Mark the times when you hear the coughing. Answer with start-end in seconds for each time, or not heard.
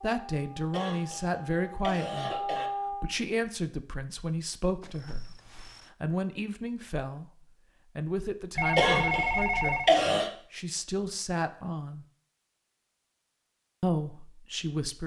0.7-2.7, 8.8-10.3.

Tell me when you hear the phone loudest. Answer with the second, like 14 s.
9 s.